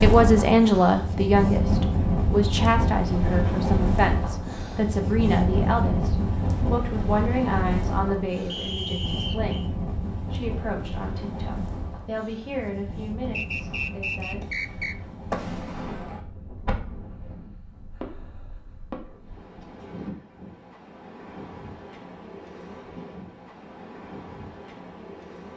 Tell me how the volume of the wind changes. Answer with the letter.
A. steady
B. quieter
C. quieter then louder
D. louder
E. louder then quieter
B.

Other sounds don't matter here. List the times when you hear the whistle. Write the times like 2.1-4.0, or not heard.
8.4-9.7, 13.3-14.9.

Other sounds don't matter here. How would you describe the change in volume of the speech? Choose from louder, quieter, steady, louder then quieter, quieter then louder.
quieter.